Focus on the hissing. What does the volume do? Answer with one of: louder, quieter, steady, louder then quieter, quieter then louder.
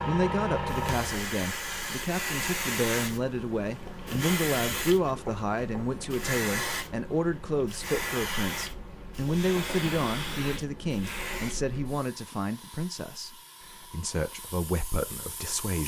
quieter.